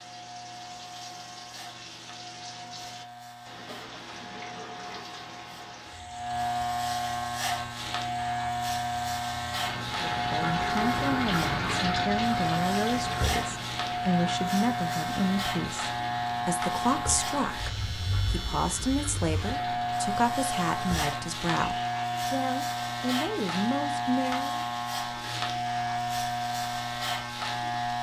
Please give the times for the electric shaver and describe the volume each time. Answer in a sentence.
The electric shaver can be heard from 0.0 to 27.9 s, getting louder.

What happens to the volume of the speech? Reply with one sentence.
The loudness of the speech stays about the same.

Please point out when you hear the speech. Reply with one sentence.
The speech can be heard from 10.0 to 24.6 s.